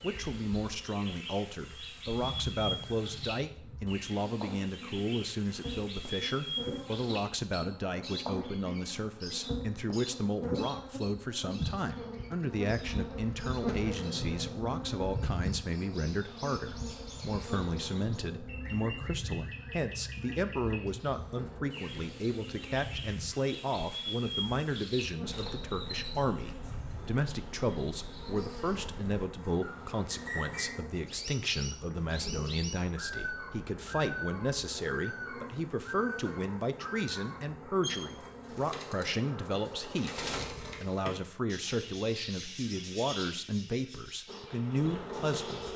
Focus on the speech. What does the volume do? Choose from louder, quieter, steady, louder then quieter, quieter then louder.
steady.